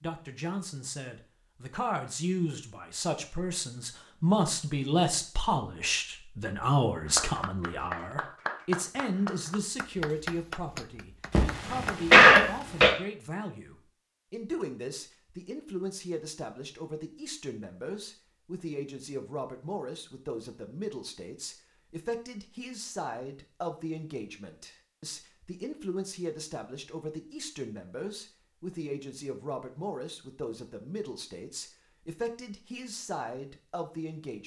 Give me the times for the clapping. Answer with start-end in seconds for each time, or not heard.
7.0-12.6.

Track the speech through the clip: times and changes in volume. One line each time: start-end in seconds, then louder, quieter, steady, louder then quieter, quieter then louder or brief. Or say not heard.
0.0-34.4 quieter.